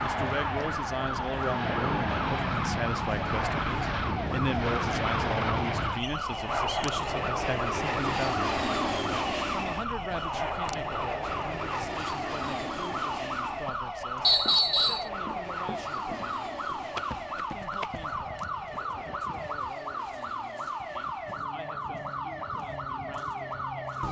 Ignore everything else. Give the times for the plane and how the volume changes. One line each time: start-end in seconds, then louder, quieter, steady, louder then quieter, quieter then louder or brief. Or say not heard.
0.0-24.0 quieter.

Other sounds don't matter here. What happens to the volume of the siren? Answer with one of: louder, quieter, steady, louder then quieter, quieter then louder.
steady.